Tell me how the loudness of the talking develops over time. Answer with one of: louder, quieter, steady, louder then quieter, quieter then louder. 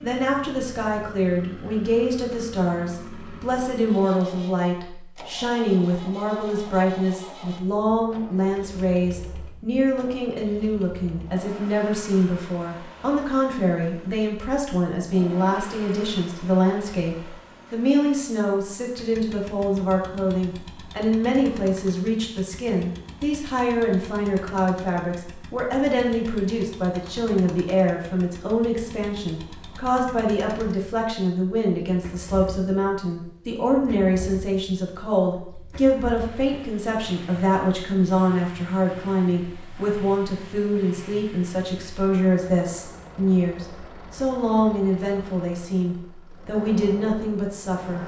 steady.